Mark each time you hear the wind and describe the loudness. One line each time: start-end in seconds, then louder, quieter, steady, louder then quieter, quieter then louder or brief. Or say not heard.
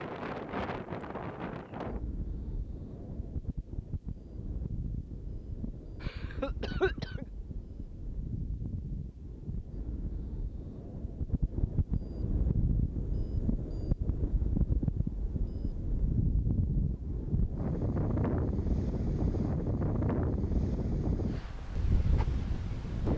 0.0-23.1 louder.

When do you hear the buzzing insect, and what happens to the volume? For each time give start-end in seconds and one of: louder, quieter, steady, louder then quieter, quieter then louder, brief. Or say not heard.
not heard.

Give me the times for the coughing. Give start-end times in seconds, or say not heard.
6.0-7.2.